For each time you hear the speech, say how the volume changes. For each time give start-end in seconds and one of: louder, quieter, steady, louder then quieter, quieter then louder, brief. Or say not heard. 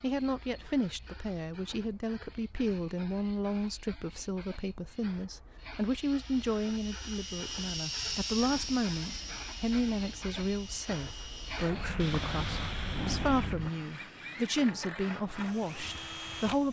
0.0-16.6 steady.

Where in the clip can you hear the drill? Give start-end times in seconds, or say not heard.
5.7-16.6.